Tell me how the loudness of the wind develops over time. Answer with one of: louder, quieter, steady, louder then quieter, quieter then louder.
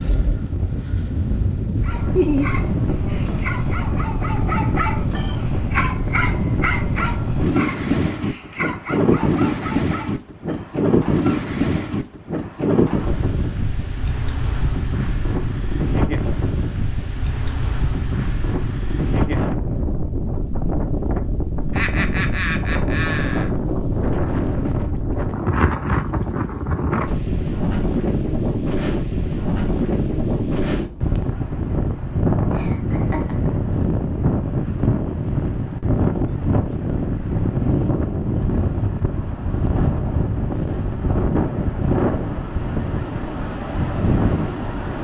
steady.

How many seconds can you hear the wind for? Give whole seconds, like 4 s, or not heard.
45 s.